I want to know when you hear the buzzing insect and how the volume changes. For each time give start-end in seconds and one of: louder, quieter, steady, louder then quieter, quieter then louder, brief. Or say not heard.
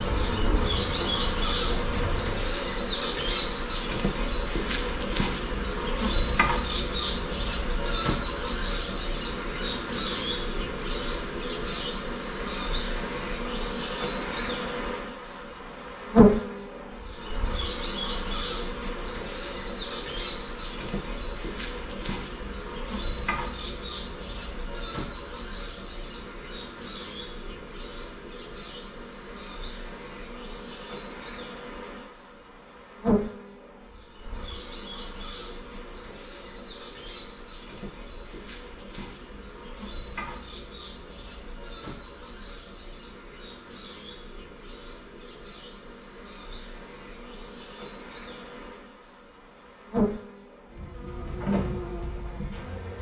0.0-52.9 quieter.